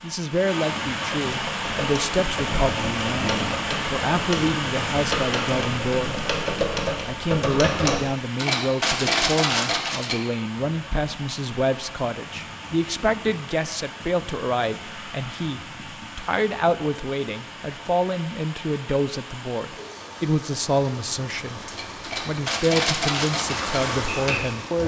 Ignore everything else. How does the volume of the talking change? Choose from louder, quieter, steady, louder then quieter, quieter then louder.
steady.